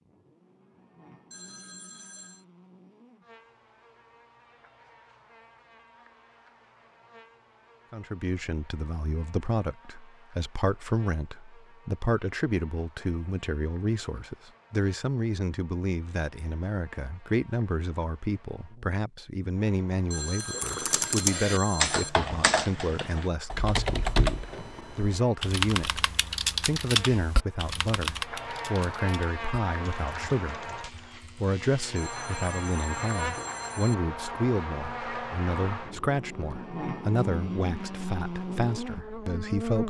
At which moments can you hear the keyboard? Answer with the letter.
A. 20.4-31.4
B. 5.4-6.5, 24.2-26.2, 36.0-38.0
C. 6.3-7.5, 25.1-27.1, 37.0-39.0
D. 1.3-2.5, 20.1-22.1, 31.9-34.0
A.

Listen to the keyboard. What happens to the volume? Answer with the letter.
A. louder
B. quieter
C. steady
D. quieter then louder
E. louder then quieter
B.